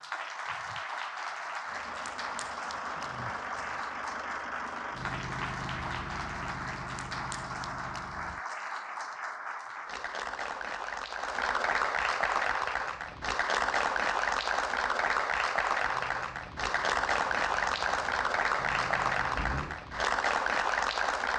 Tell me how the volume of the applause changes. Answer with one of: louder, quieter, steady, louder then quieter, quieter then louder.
louder.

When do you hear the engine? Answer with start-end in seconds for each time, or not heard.
1.6-8.4, 15.8-19.8.